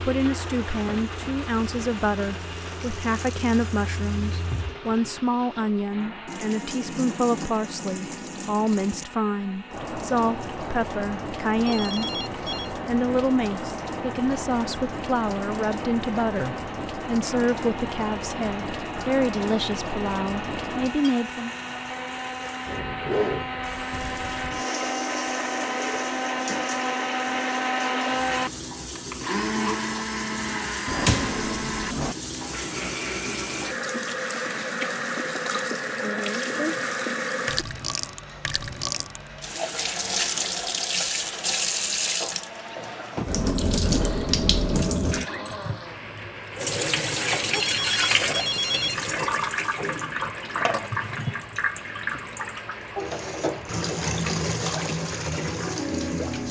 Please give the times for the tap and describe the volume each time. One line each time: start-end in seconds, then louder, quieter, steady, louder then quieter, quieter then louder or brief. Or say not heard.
0.0-56.4 louder.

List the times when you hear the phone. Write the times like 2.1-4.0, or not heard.
11.7-12.8, 47.5-49.2.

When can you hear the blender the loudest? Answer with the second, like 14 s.
28 s.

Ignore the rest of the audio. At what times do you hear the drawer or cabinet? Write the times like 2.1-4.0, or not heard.
30.9-32.1.